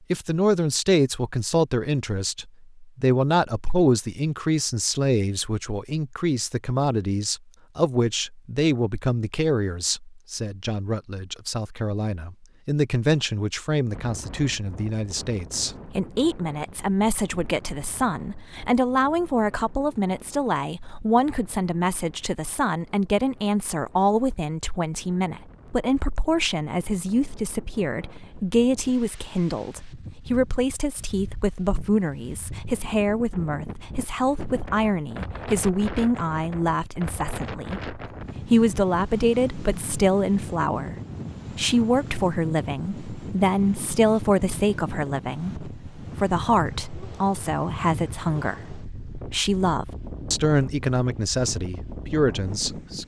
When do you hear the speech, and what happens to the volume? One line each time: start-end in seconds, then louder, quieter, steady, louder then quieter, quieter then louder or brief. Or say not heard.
0.1-41.0 steady
41.5-53.0 steady.